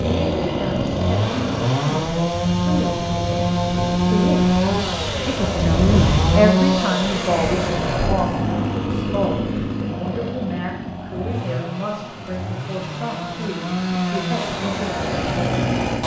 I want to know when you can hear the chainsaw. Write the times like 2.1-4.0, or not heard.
0.0-16.0.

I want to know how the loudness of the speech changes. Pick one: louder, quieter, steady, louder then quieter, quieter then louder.
louder then quieter.